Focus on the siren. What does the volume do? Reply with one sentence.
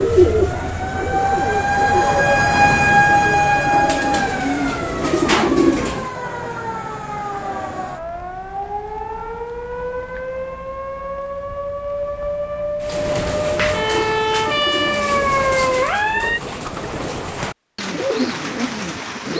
The loudness of the siren goes down, then up.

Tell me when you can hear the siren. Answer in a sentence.
You can hear the siren from 0.0 to 16.4 s.